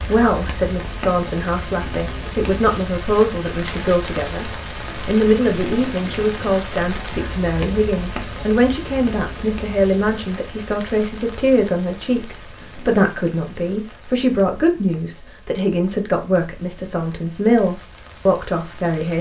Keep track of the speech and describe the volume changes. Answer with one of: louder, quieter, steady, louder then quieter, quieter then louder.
steady.